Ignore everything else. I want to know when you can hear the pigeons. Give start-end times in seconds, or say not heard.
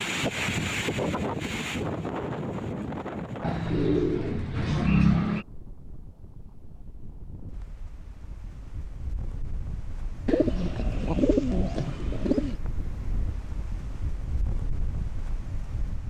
3.4-5.5, 10.2-12.6.